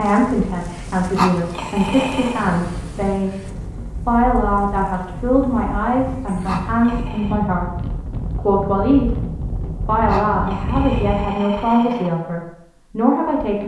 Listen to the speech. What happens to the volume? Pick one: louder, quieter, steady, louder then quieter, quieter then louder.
steady.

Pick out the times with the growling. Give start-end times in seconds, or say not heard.
1.1-2.5, 6.5-7.3, 10.1-12.1.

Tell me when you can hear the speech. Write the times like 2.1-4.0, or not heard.
0.0-3.5, 4.0-9.2, 9.8-13.6.